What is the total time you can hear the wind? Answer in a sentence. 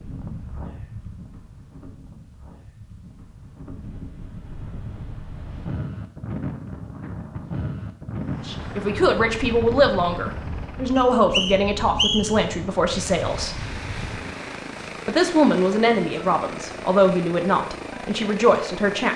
The wind can be heard for 14 seconds in total.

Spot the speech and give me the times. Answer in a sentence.
You can hear the speech from 8.4 to 13.6 s and from 15.1 to 19.1 s.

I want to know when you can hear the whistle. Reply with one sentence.
You can hear the whistle from 10.9 to 12.4 s.